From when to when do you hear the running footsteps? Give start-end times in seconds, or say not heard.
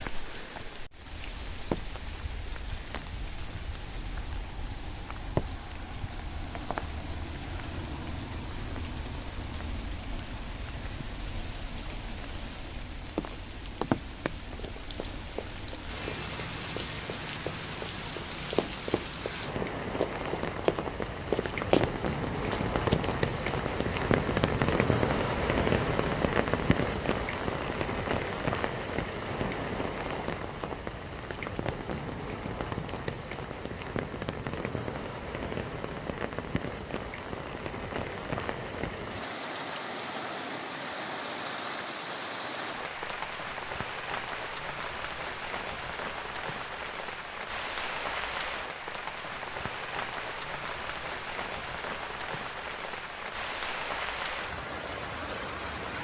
14.6-23.1.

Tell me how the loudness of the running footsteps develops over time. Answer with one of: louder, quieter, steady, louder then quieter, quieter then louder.
louder.